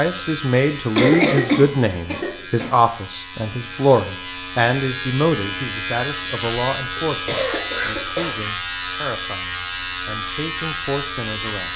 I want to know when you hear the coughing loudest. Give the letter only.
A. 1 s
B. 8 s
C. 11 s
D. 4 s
A.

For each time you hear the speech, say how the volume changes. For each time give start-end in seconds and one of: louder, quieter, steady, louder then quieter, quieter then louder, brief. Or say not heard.
0.0-11.7 quieter.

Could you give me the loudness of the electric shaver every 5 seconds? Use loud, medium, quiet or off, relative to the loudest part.
medium, loud, loud.